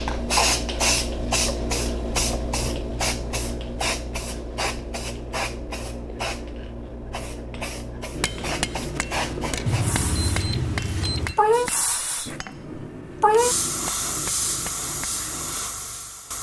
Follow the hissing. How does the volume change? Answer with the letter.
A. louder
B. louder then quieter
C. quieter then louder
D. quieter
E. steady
C.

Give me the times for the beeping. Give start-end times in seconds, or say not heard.
9.7-11.3.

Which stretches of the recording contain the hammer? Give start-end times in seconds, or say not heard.
8.1-15.6.